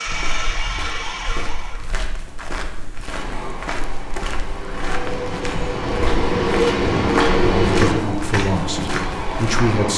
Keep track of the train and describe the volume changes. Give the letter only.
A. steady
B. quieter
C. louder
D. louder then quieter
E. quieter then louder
D.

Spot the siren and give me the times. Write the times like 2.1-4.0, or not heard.
0.0-1.9.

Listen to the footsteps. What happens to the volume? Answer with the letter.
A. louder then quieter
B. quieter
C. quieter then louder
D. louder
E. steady
D.